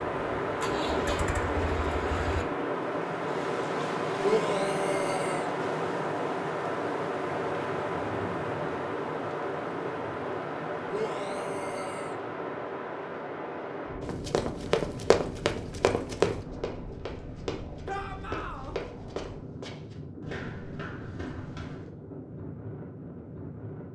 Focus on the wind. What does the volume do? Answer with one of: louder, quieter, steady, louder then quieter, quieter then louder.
quieter.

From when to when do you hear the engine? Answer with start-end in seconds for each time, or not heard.
0.1-2.5.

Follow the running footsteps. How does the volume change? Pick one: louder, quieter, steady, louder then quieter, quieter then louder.
quieter.